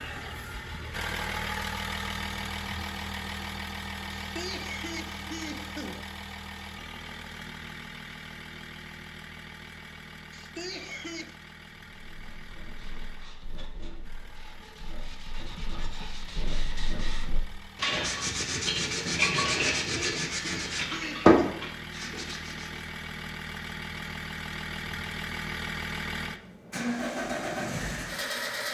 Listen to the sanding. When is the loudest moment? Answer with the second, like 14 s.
21 s.